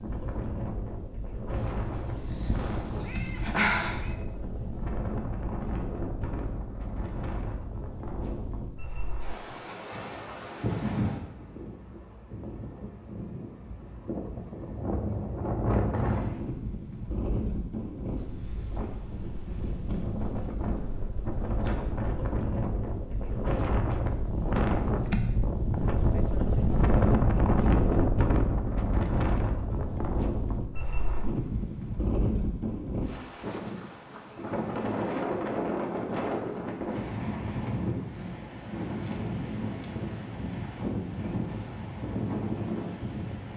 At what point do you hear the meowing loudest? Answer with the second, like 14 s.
4 s.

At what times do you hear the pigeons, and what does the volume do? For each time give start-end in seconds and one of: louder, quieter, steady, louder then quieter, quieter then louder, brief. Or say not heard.
not heard.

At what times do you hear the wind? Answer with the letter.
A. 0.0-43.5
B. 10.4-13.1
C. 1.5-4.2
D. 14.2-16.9
A.